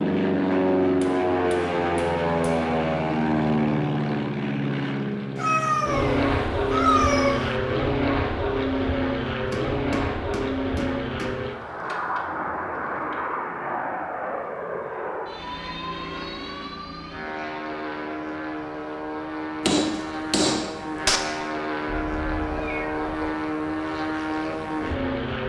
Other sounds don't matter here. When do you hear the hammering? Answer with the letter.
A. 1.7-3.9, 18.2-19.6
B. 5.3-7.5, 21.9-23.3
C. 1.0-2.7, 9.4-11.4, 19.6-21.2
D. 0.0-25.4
C.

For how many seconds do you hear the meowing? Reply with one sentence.
You can hear the meowing for 4 seconds altogether.